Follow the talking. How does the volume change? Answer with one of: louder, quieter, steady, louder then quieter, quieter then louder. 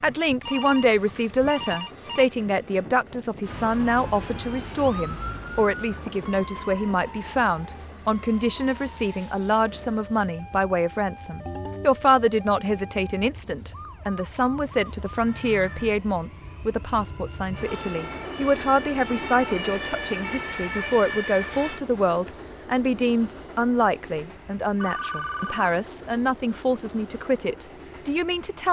steady.